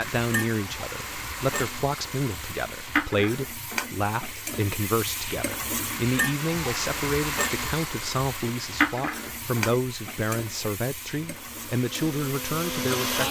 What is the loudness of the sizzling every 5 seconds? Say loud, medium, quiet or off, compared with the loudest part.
loud, loud, medium.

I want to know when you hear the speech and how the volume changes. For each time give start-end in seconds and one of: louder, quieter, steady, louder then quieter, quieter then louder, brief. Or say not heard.
0.0-13.2 steady.